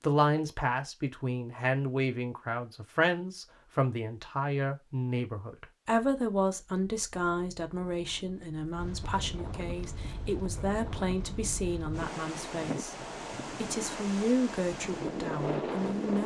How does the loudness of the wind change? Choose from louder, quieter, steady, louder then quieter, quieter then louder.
louder.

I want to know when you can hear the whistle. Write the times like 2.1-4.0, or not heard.
not heard.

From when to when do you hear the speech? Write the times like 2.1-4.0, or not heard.
0.0-16.2.